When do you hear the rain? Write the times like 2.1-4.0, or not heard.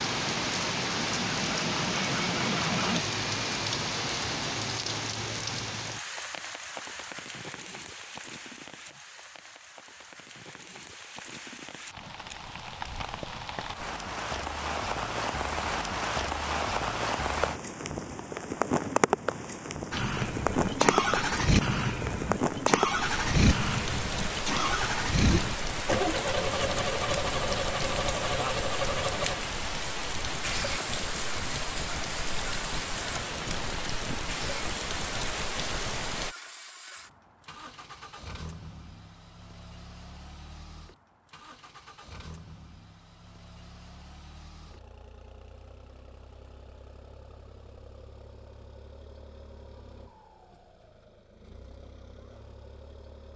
0.0-36.4.